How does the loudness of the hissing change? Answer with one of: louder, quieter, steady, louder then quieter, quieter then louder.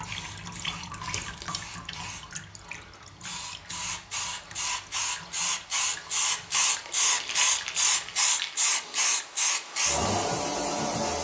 louder.